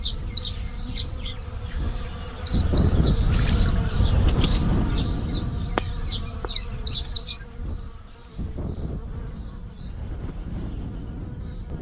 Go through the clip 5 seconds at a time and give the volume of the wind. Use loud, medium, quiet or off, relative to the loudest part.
loud, medium, medium.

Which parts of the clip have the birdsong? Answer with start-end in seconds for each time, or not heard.
0.0-7.5.